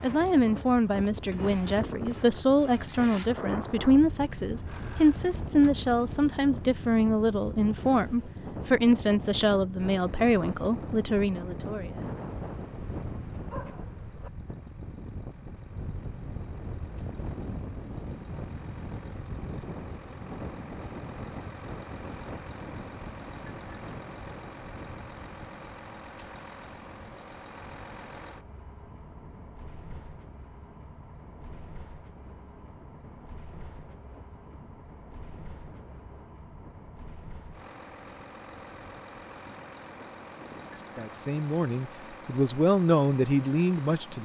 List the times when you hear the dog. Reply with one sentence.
The dog can be heard from 12.2 to 14.3 s.